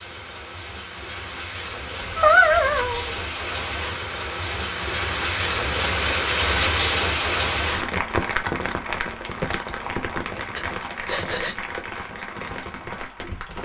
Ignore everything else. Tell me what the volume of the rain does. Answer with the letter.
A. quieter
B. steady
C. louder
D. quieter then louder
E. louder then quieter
E.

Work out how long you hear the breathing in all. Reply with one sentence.
The breathing can be heard for 2 seconds in total.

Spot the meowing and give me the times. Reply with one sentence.
The meowing can be heard from 2.0 to 3.1 s.